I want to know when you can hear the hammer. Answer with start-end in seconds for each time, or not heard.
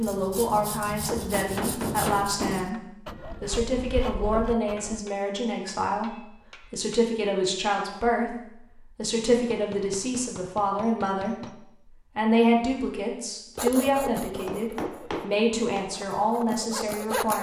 1.1-2.8, 4.8-7.1, 9.3-11.5, 13.8-15.8.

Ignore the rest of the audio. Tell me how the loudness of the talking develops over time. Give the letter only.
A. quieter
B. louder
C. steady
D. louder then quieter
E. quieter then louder
C.